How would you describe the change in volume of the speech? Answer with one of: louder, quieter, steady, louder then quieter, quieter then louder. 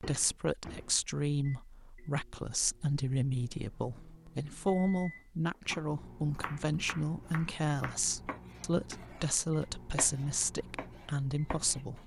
steady.